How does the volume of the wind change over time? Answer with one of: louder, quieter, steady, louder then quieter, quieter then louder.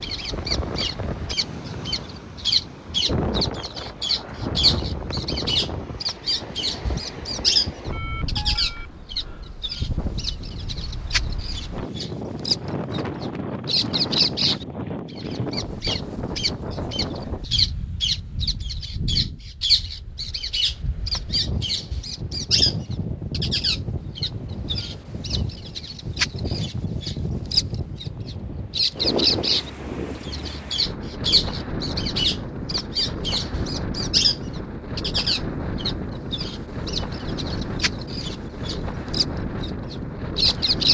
steady.